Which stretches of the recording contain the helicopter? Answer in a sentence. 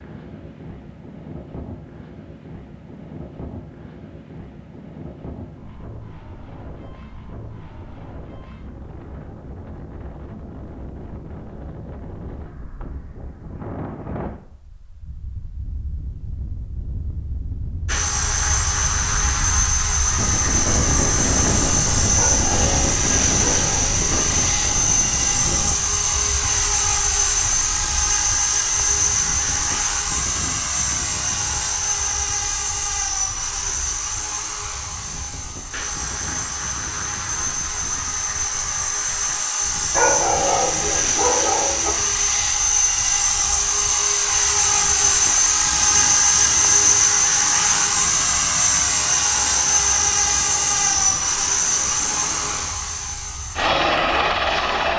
You can hear the helicopter from 17.9 to 54.9 s.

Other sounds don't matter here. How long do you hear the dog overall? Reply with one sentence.
The dog can be heard for 4 seconds in total.